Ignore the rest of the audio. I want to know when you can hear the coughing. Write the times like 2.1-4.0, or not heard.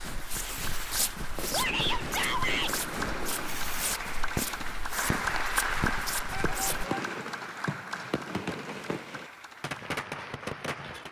not heard.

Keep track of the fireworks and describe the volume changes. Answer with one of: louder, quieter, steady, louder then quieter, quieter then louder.
steady.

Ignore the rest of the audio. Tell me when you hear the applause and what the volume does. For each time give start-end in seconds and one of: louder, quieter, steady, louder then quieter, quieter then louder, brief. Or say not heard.
0.0-11.0 louder then quieter.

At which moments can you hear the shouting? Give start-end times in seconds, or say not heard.
1.5-2.8, 6.3-7.0.